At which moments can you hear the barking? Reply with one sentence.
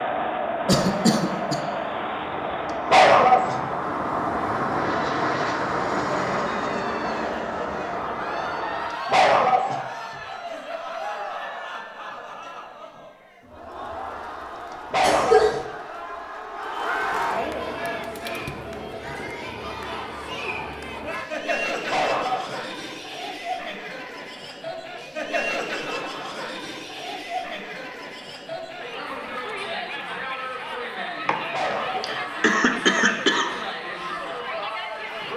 The barking can be heard from 2.9 to 3.6 s, from 8.9 to 9.8 s, from 14.7 to 15.7 s, from 21.9 to 22.6 s and from 31.3 to 32.2 s.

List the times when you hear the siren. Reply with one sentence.
You can't hear the siren here.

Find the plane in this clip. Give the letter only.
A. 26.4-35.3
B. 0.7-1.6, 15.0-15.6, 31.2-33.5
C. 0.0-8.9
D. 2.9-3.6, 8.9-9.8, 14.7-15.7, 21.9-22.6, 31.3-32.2
C.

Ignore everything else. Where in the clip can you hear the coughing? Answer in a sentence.
You can hear the coughing from 0.7 to 1.6 s, from 15.0 to 15.6 s and from 31.2 to 33.5 s.